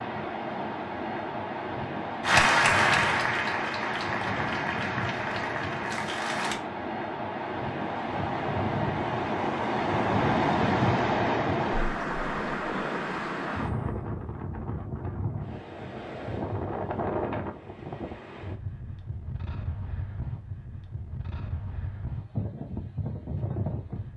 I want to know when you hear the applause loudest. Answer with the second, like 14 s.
3 s.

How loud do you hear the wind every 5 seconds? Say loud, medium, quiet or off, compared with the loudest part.
medium, loud, loud, medium, medium.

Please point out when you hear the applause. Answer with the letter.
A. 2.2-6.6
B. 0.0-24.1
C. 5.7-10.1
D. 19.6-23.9
A.